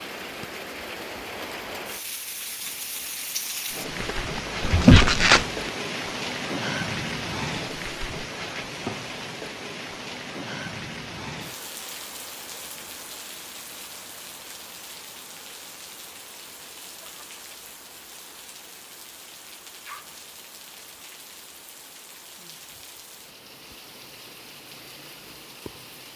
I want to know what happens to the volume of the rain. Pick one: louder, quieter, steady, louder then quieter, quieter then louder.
quieter.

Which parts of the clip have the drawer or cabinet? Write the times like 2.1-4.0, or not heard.
4.6-5.5.